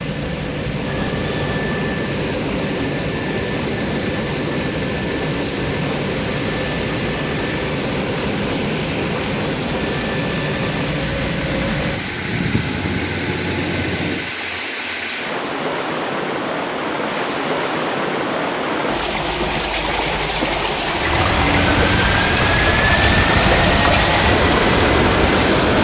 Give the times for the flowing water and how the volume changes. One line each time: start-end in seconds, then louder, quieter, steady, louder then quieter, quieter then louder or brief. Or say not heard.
0.0-25.7 louder.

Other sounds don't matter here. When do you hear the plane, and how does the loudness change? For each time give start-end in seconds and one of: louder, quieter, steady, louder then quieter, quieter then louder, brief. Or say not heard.
0.0-14.3 steady
20.9-25.7 steady.